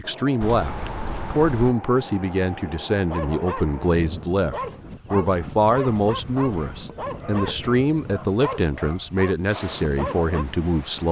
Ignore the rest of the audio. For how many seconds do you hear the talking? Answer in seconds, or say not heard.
11 s.